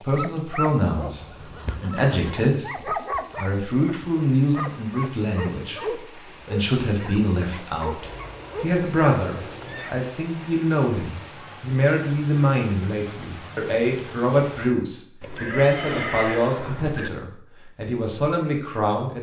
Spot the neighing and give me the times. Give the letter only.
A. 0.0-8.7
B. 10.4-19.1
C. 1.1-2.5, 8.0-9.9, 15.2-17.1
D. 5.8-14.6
C.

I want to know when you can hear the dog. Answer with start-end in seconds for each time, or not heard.
0.0-8.7.